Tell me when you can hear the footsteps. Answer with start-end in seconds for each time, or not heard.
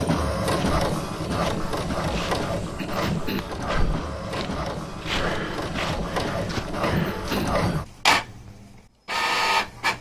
0.4-7.8.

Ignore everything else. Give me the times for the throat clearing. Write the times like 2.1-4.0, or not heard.
2.8-3.5, 6.8-7.5.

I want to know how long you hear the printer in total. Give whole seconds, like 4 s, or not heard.
10 s.